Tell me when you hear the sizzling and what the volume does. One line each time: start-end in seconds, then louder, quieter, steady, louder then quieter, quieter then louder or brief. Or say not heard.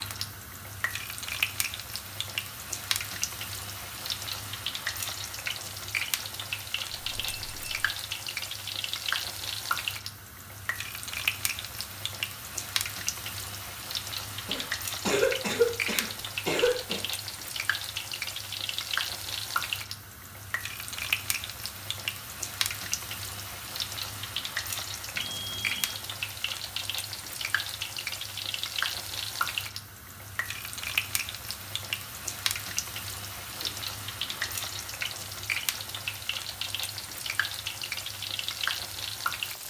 0.0-39.6 steady.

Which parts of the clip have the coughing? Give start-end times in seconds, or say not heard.
14.4-17.0, 33.6-34.5.